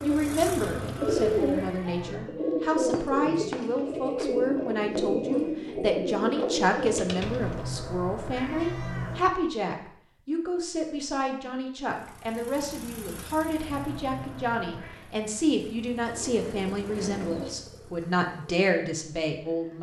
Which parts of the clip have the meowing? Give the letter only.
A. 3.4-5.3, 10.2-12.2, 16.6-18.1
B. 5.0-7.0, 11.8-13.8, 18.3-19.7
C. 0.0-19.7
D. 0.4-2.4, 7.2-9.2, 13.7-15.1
D.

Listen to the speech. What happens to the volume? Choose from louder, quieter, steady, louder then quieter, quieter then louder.
steady.